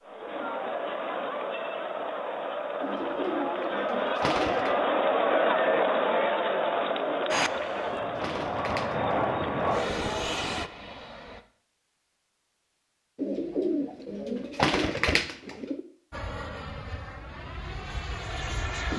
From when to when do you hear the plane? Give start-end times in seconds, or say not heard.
7.3-11.4, 16.1-18.9.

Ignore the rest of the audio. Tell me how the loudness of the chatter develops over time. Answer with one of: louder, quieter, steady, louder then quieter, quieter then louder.
louder then quieter.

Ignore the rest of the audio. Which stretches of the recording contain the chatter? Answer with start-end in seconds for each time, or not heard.
0.0-10.3.